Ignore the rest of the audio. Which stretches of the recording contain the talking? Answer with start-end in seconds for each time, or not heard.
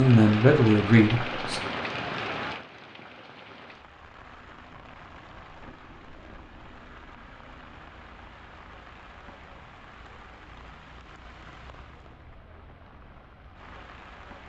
0.0-1.6.